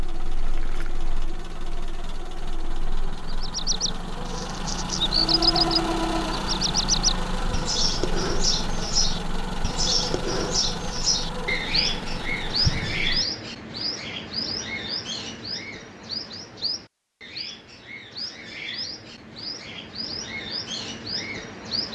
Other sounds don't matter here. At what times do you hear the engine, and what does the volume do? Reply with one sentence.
You can hear the engine from 0.0 to 13.2 s, getting louder then quieter.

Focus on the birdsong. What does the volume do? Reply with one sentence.
The loudness of the birdsong goes down.